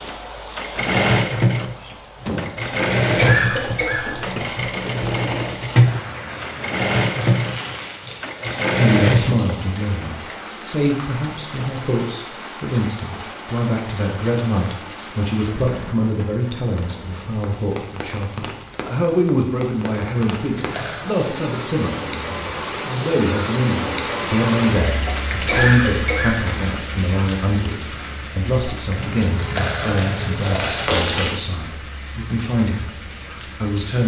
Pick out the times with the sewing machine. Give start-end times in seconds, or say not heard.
0.0-9.6.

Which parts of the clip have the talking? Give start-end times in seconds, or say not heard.
8.8-34.0.